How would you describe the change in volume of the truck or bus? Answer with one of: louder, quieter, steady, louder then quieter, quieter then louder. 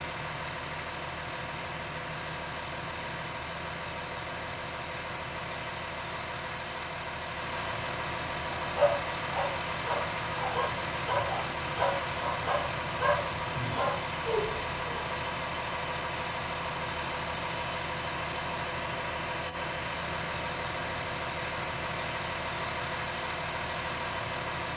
steady.